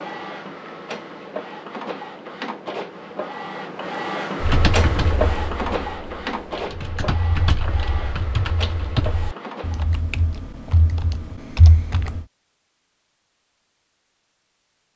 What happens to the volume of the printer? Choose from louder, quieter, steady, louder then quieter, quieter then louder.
louder then quieter.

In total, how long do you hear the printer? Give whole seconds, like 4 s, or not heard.
10 s.